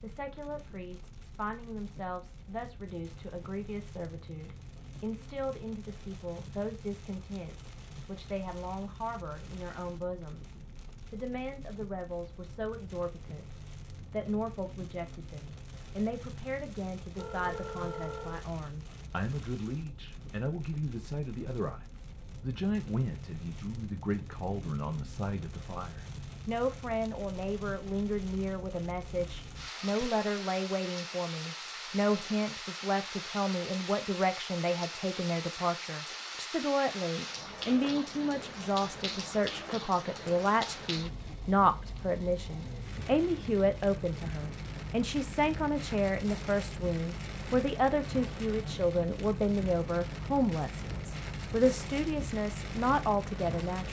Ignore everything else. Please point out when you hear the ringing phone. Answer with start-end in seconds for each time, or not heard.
17.1-18.4, 29.8-30.2.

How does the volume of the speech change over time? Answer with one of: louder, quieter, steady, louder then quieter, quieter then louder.
louder.